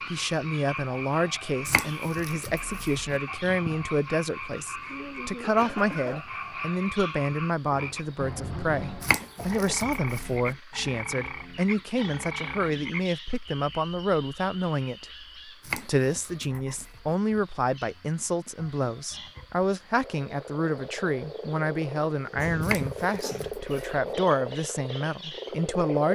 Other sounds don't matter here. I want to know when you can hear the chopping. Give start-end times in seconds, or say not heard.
1.6-3.2, 9.0-10.6, 15.6-17.1, 22.6-24.1.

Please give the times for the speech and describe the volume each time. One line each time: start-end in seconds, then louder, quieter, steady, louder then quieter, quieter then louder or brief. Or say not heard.
0.1-26.1 steady.